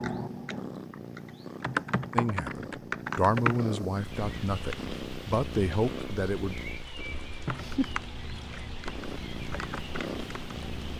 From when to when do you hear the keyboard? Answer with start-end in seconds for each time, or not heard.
0.0-3.6, 7.5-10.9.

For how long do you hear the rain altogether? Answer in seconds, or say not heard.
7 s.